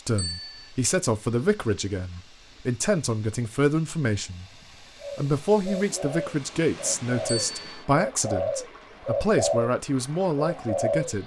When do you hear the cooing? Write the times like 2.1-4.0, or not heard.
5.0-11.2.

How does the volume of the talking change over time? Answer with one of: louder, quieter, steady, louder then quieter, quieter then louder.
steady.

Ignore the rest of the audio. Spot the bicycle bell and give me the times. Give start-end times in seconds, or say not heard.
0.1-0.7, 7.2-7.8.